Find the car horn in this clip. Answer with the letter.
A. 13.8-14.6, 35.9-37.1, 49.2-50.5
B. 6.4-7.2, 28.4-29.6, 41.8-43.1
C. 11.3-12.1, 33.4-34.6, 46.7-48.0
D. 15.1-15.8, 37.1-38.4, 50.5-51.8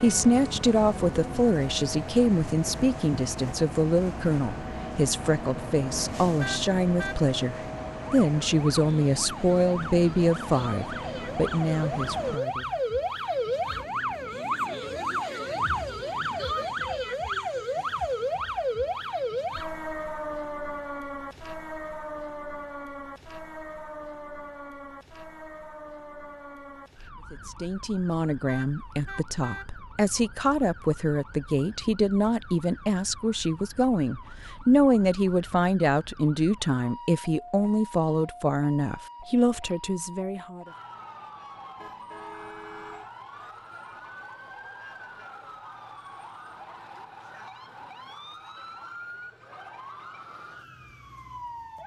B.